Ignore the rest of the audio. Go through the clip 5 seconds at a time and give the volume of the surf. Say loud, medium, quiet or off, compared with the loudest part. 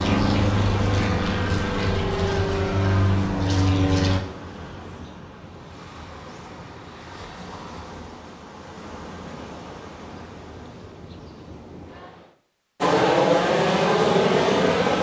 loud, medium, medium.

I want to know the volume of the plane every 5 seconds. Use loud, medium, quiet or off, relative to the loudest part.
medium, off, loud.